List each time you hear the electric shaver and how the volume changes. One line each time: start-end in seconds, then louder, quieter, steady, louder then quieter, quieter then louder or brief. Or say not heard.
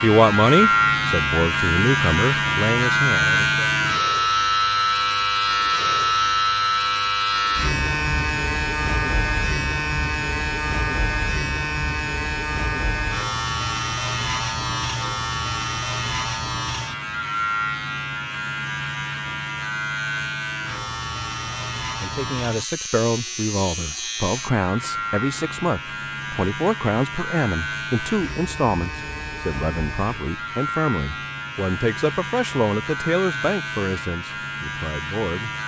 0.0-35.6 quieter.